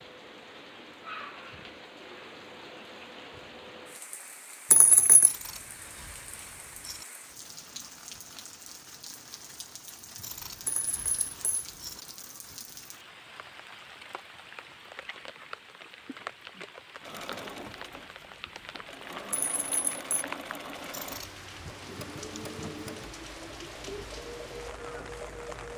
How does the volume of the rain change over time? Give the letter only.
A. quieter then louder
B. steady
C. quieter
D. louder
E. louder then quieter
B.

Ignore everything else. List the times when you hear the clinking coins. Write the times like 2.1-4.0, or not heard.
4.7-5.3, 10.7-11.7, 19.3-20.2.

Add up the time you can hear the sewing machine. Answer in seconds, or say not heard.
9 s.